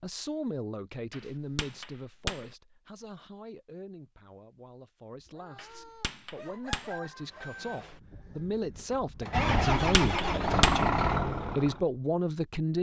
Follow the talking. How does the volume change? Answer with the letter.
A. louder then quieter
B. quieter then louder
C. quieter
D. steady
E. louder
B.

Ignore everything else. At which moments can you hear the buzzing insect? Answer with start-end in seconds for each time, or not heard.
not heard.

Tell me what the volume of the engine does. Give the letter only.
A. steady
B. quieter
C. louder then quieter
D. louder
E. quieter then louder
D.